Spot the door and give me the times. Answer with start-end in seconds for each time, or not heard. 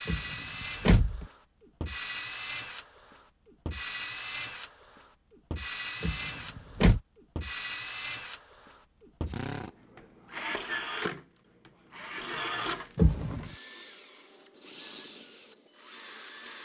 0.1-1.2, 6.0-7.0, 12.9-13.5.